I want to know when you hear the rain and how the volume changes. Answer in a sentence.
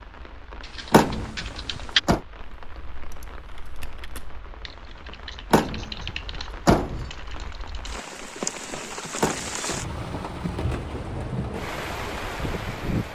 The rain can be heard from 0.0 to 13.1 s, getting louder.